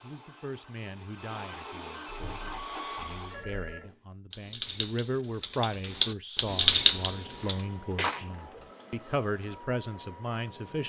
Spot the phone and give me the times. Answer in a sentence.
You can hear the phone from 3.3 to 4.0 s.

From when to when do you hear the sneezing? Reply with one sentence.
The sneezing can be heard from 7.4 to 8.2 s.